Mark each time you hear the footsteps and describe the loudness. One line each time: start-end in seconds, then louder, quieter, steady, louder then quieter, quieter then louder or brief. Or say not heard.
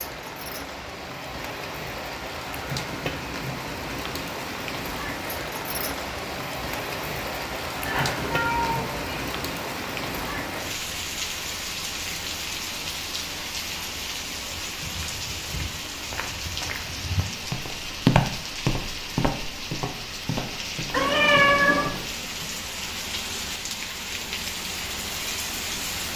14.6-22.5 louder then quieter.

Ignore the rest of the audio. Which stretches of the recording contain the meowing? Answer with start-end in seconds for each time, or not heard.
7.8-9.2, 20.9-21.9.